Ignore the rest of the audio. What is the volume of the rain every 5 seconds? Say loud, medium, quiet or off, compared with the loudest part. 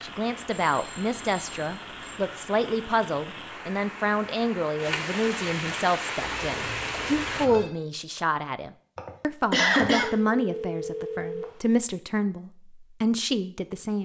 medium, loud, off.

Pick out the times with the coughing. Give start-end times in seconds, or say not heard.
8.9-10.1.